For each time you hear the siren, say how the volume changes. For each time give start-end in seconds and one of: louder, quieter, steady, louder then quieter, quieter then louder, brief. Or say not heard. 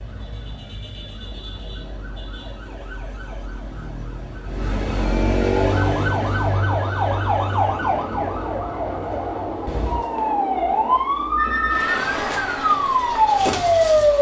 0.0-14.1 louder.